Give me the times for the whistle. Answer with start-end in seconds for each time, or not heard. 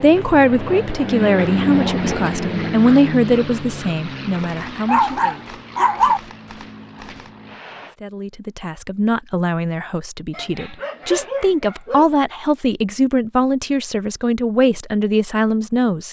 not heard.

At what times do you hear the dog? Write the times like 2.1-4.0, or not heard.
4.8-6.2, 10.3-12.2.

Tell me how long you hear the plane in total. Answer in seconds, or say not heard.
8 s.